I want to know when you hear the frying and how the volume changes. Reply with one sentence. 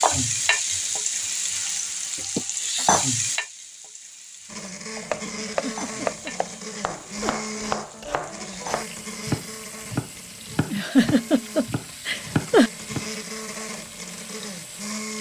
You can hear the frying from 0.0 to 15.1 s, getting quieter.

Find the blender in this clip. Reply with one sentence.
You can hear the blender from 4.5 to 15.1 s.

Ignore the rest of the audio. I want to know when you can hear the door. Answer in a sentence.
The door can't be heard in this clip.